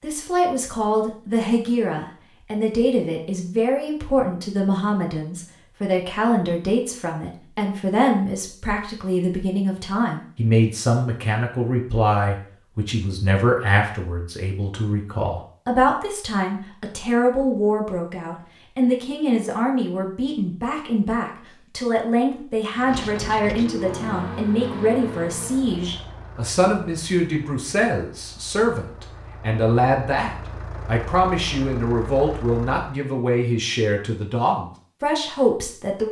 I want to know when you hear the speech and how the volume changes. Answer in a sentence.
The speech can be heard from 0.0 to 36.0 s, at a steady volume.